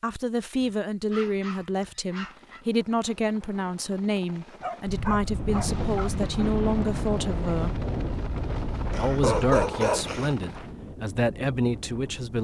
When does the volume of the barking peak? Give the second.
9 s.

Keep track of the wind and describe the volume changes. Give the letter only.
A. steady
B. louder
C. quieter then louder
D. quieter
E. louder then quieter
D.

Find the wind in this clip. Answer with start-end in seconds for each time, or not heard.
4.8-12.3.